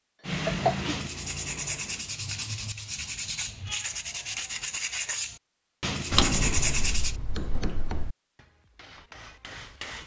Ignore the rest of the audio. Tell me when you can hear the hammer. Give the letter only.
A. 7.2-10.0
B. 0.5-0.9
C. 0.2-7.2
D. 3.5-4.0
A.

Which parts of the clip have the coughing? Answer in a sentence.
You can hear the coughing from 0.5 to 0.9 s.